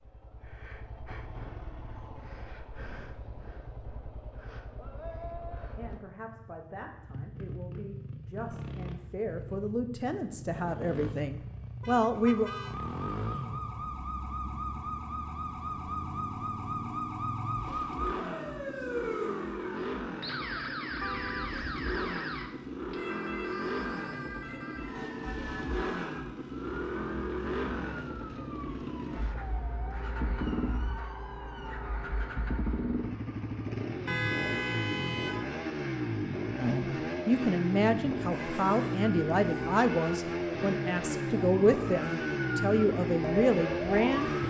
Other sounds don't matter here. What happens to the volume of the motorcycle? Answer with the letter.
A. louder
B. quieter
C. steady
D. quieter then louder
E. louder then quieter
A.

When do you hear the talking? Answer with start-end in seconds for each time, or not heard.
5.8-12.5, 36.5-44.4.